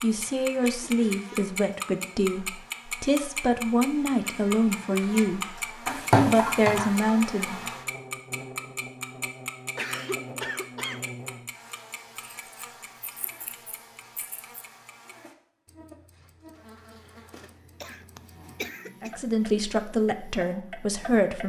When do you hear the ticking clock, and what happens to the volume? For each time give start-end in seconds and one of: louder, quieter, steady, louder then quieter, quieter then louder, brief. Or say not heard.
0.0-21.4 quieter then louder.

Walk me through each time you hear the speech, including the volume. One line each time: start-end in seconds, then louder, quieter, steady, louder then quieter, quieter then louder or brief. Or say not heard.
0.0-5.4 steady
6.2-7.5 brief
19.0-21.4 brief.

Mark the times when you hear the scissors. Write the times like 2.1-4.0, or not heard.
5.8-6.9, 12.2-14.6.